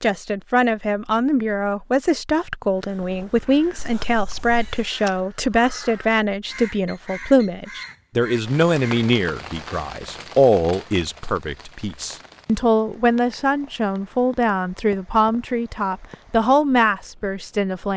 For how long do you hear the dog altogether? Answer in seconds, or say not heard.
not heard.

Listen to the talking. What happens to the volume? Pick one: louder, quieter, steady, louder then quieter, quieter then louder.
steady.